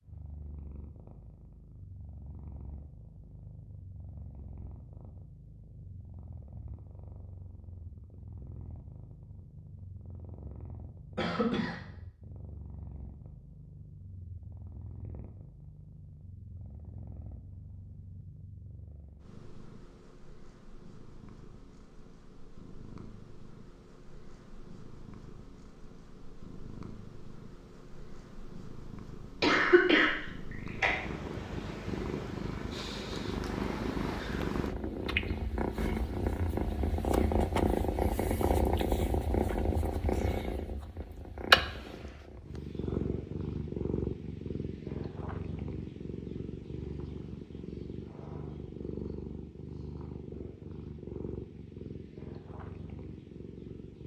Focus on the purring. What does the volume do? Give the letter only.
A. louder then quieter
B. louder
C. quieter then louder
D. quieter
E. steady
A.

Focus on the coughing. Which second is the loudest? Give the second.
30 s.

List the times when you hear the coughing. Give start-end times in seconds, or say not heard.
11.2-11.8, 29.4-30.9.